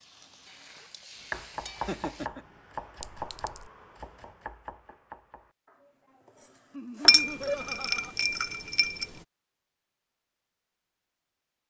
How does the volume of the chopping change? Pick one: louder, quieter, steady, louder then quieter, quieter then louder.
quieter then louder.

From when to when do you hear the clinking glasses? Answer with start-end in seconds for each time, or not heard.
3.0-3.6, 7.0-9.1.